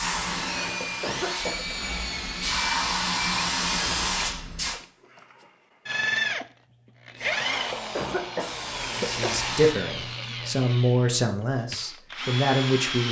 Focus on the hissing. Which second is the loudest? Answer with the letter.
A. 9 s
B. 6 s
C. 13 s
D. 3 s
D.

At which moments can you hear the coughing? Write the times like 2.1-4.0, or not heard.
0.5-1.8, 7.2-9.4.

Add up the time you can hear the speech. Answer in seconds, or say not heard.
4 s.